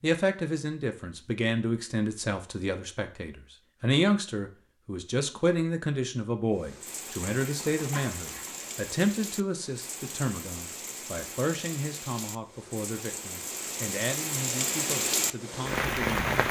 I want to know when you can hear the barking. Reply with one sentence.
The barking can't be heard in this clip.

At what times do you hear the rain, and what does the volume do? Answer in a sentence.
The rain can be heard from 6.5 to 16.4 s, getting louder.